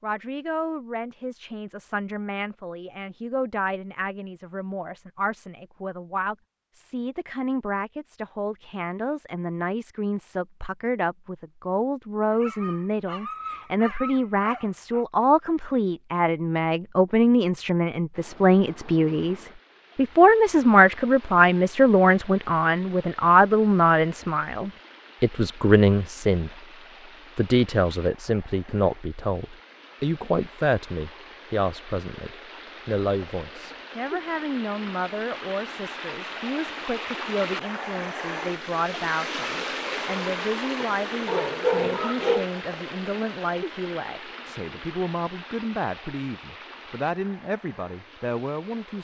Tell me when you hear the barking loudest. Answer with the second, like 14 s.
42 s.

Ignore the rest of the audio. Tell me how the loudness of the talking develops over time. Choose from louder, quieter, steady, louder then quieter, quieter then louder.
louder then quieter.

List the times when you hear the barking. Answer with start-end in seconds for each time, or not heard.
12.3-15.1, 40.8-42.5.